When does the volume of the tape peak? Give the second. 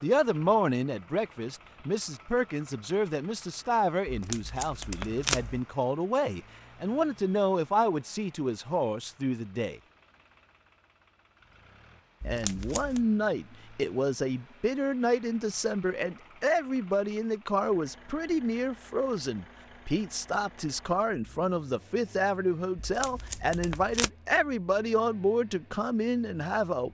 5 s.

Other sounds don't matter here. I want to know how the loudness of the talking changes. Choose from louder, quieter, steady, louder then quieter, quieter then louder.
steady.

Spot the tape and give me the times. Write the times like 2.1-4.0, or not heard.
4.0-5.6, 12.2-13.1, 22.8-24.1.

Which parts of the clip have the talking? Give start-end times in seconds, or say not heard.
0.0-9.8, 12.2-26.8.